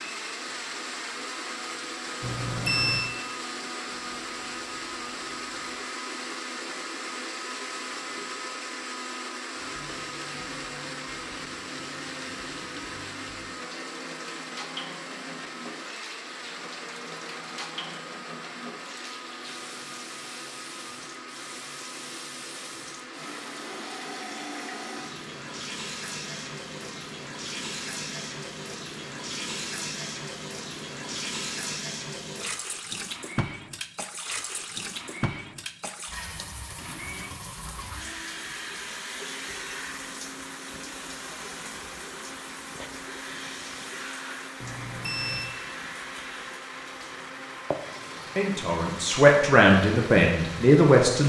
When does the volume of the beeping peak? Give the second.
3 s.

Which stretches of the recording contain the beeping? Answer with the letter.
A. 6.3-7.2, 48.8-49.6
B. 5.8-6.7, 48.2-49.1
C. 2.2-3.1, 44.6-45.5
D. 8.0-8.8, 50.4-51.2
C.